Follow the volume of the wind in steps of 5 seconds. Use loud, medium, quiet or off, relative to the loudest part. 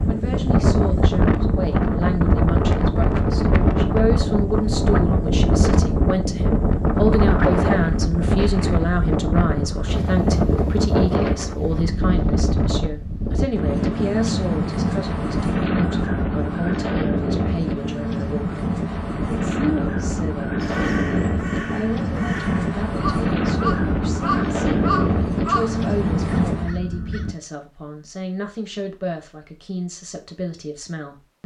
loud, loud, loud, loud, loud, loud, off.